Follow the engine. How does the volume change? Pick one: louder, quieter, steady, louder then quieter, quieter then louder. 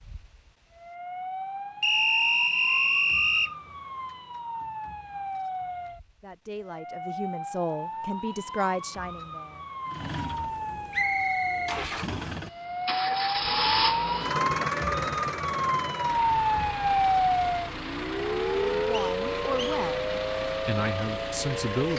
louder then quieter.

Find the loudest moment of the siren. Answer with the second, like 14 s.
17 s.